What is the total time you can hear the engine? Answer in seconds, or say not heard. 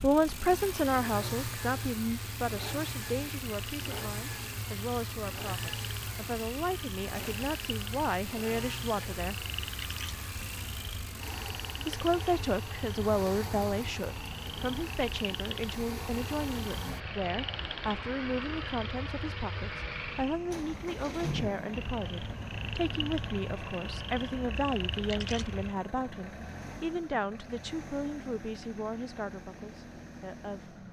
31 s.